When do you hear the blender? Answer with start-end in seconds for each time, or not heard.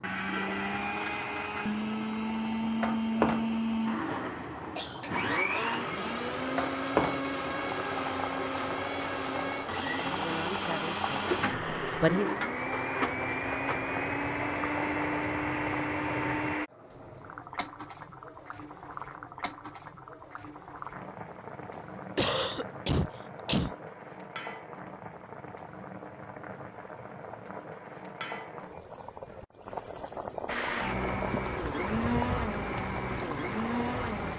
0.0-16.7, 30.4-34.3.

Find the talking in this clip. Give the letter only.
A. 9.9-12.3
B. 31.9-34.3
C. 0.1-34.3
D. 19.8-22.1
A.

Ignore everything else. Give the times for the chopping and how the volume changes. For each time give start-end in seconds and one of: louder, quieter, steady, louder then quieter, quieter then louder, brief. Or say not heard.
not heard.